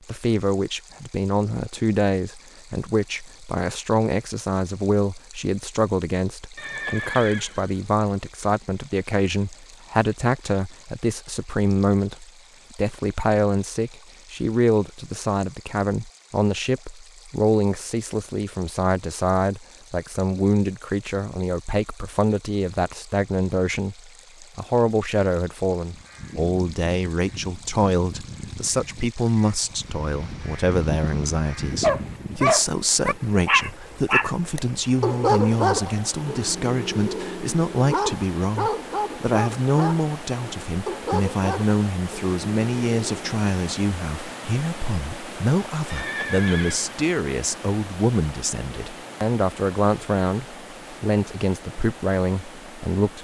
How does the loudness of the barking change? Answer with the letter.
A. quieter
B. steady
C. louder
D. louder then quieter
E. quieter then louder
A.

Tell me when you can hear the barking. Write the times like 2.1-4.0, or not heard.
31.8-43.4.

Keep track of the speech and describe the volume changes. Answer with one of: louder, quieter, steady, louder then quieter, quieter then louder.
steady.